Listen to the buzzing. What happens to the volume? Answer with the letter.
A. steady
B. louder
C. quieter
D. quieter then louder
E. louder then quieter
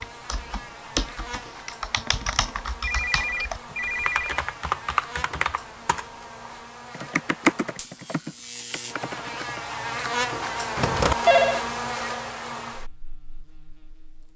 B.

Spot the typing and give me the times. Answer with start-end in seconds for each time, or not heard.
0.0-9.6.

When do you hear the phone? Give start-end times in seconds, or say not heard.
2.8-4.3, 10.8-11.7.